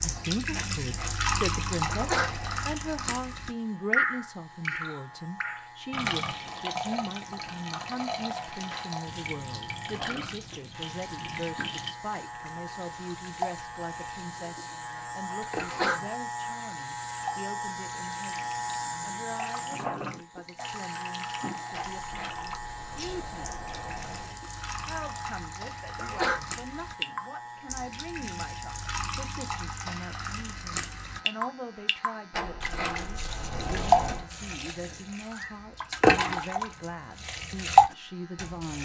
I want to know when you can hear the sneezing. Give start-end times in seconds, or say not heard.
1.9-2.4, 15.6-16.1, 25.9-26.5.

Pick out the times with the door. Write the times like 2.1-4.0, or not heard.
0.5-2.6, 21.7-24.4, 32.3-34.2.